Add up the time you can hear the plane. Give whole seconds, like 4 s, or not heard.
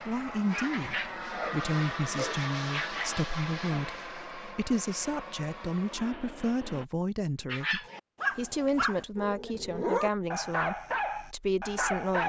7 s.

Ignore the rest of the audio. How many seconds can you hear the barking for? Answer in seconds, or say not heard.
9 s.